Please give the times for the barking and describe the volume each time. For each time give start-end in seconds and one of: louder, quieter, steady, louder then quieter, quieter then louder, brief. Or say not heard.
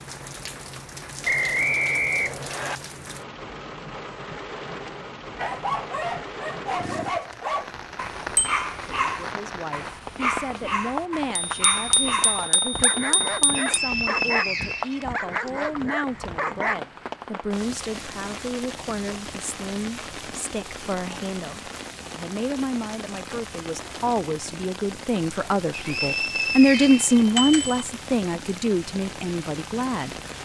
5.3-16.8 steady.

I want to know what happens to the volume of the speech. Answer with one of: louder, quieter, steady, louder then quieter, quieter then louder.
louder.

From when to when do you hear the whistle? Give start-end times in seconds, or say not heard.
1.2-2.8, 13.6-15.5, 25.7-27.2.